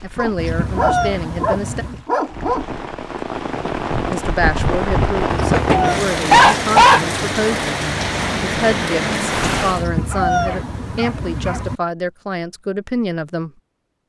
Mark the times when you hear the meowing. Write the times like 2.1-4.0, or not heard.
0.3-2.0, 5.3-6.0, 9.8-11.8.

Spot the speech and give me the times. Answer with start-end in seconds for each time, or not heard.
0.0-1.9, 4.1-13.5.